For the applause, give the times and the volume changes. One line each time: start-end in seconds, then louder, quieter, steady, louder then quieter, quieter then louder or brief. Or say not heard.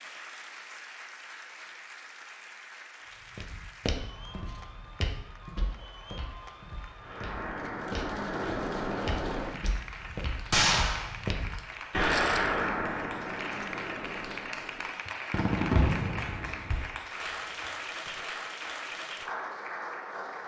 0.0-20.4 louder.